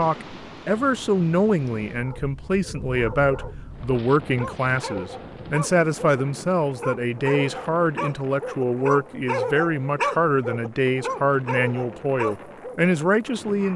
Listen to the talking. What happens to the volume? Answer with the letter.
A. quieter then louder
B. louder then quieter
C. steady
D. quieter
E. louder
C.